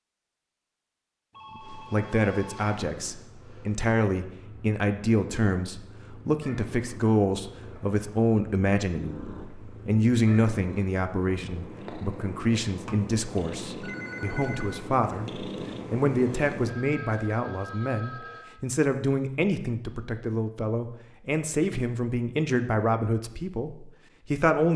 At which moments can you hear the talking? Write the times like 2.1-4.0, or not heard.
1.7-24.7.